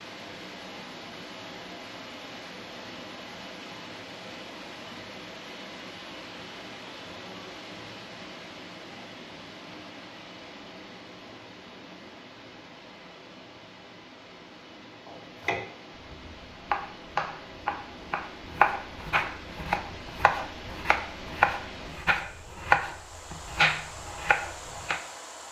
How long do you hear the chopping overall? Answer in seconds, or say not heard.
10 s.